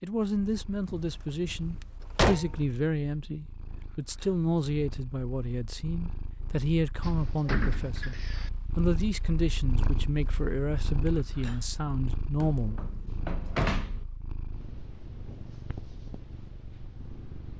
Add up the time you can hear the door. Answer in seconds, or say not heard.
5 s.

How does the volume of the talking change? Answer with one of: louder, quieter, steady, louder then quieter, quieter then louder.
steady.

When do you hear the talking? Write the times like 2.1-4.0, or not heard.
0.0-8.2, 8.8-12.8.